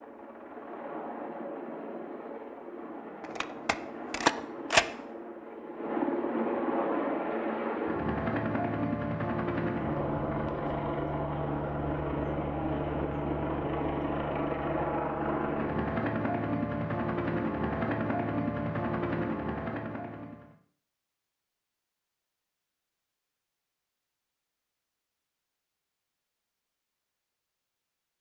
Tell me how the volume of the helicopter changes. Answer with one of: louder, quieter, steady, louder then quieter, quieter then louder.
louder.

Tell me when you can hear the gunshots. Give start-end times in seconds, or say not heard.
3.2-4.8.